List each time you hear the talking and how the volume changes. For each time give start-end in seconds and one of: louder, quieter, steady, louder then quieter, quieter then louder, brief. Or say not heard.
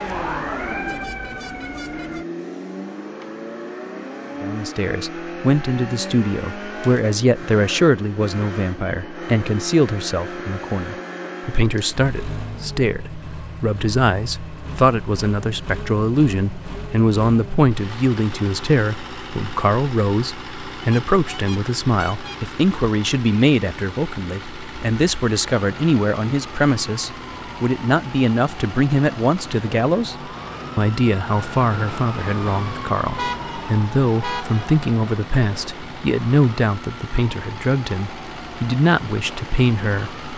4.4-40.3 steady.